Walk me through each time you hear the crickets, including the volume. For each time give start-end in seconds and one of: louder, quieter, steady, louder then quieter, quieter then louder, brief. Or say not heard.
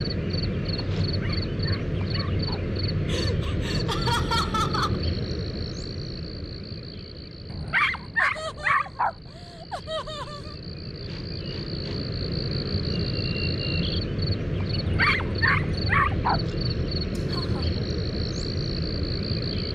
0.0-19.6 quieter then louder.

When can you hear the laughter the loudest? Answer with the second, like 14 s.
4 s.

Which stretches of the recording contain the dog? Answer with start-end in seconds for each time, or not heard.
1.1-2.6, 7.5-9.2, 14.8-16.4.